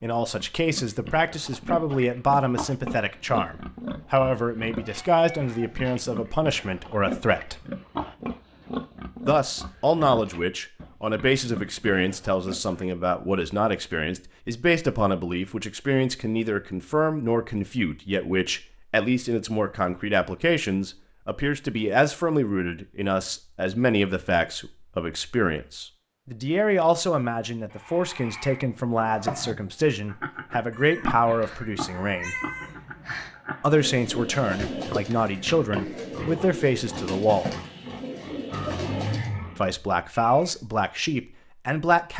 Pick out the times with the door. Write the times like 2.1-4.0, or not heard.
29.2-29.7.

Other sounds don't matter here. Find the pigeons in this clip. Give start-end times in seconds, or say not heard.
33.6-39.3.